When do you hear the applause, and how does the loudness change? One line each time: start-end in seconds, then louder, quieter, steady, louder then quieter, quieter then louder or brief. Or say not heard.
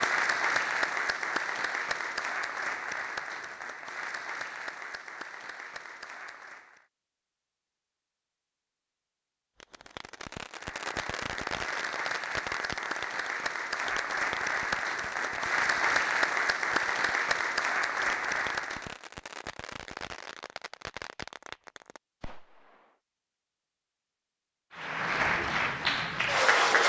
0.0-6.8 quieter
10.5-18.9 louder
24.7-26.8 brief.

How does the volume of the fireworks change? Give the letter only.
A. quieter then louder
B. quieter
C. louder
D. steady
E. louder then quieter
B.